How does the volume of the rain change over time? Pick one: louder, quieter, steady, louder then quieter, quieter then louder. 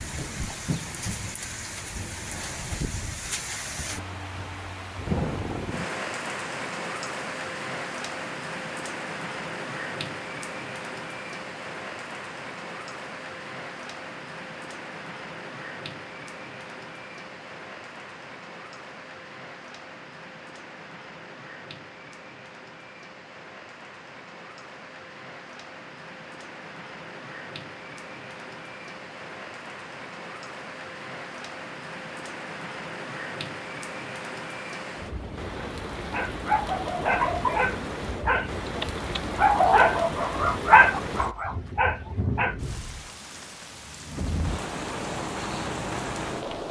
quieter then louder.